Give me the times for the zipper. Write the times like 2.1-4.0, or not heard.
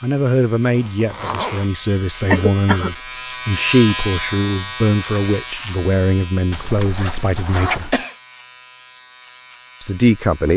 0.8-1.7, 6.5-8.1.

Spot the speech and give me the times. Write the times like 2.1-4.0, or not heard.
0.0-8.0, 9.8-10.5.